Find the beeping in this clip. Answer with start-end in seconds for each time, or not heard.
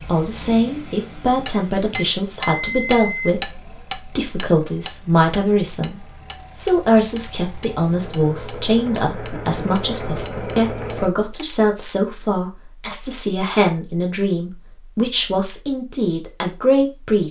1.9-3.3.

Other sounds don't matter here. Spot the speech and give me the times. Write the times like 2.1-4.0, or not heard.
0.1-17.2.